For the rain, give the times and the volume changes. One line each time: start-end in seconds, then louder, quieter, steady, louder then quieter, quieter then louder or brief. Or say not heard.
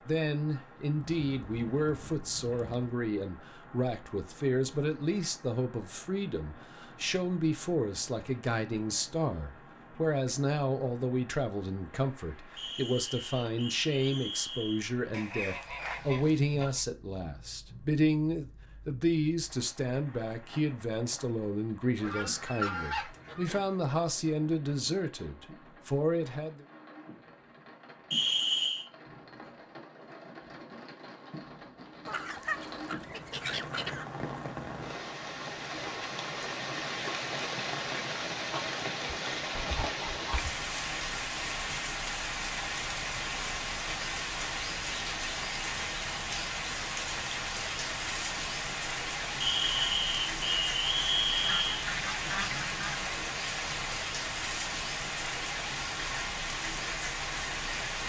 0.0-58.0 louder.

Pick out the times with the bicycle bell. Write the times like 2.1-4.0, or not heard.
not heard.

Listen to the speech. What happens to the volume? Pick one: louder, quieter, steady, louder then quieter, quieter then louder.
steady.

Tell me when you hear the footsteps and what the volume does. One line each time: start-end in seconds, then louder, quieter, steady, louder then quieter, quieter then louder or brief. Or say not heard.
not heard.